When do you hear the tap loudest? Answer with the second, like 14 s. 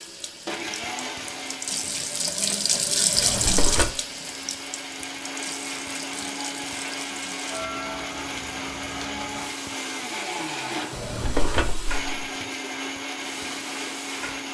3 s.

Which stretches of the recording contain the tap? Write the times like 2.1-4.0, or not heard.
0.0-14.5.